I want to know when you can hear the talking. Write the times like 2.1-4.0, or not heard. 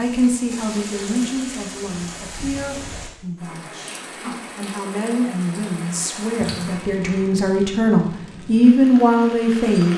0.0-9.9.